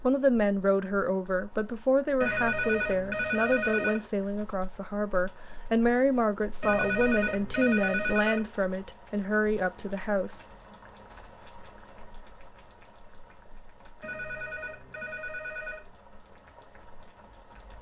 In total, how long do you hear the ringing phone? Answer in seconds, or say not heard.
6 s.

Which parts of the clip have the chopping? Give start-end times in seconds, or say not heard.
not heard.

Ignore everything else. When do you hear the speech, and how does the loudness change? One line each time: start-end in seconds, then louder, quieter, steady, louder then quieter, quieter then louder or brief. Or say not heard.
0.0-10.4 steady.